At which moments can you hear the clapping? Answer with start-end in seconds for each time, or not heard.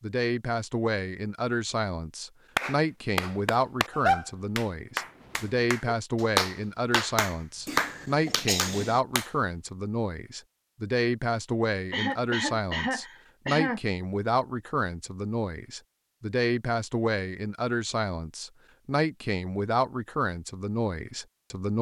2.5-9.3.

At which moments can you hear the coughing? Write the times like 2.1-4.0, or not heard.
7.7-9.0, 11.9-13.8.